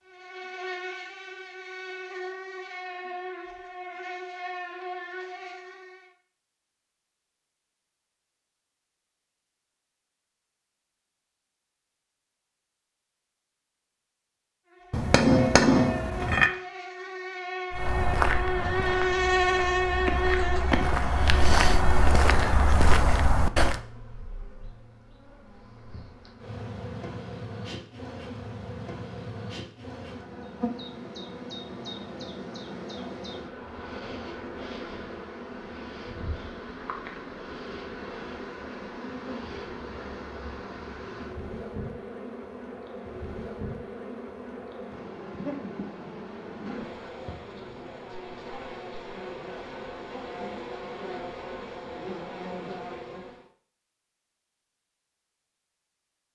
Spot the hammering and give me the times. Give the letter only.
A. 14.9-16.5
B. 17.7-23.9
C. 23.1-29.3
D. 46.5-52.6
A.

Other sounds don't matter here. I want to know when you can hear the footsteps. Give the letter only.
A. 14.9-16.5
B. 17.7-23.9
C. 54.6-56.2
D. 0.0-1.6
B.